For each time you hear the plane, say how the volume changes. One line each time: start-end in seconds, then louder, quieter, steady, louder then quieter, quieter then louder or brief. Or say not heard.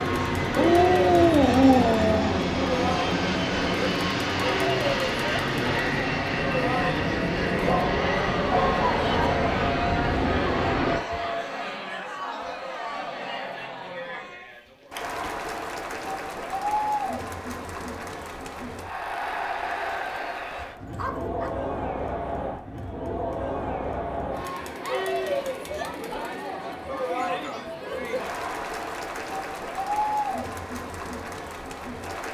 0.0-11.0 steady.